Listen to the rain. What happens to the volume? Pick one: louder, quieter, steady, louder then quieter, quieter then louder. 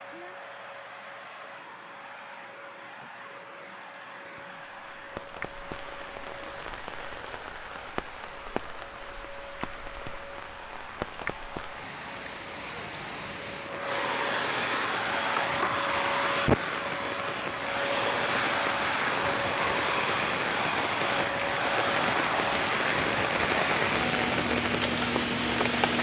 louder.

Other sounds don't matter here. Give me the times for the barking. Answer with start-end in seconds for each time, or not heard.
not heard.